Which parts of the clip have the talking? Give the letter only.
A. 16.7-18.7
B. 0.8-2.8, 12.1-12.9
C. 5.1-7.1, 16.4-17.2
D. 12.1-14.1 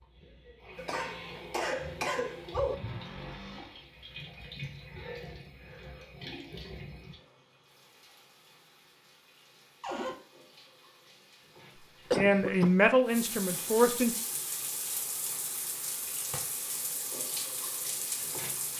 D.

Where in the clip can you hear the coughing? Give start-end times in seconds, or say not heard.
0.8-2.8, 12.1-12.9.